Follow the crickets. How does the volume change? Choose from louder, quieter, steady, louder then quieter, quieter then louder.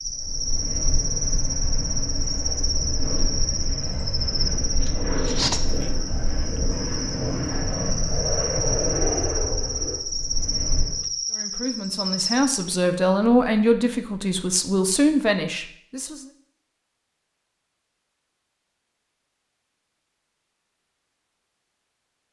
steady.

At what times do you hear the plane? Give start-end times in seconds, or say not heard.
0.0-11.1.